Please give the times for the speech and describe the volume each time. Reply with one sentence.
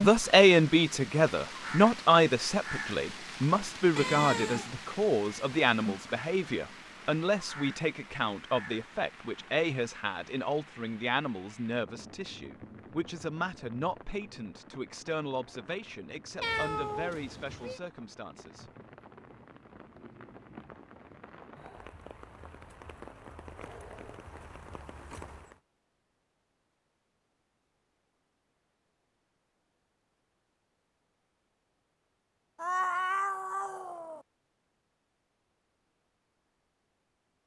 The speech can be heard from 0.0 to 18.6 s, getting quieter.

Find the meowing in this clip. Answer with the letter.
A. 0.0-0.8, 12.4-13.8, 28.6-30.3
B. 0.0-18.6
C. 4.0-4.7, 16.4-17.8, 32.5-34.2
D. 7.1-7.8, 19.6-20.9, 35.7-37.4
C.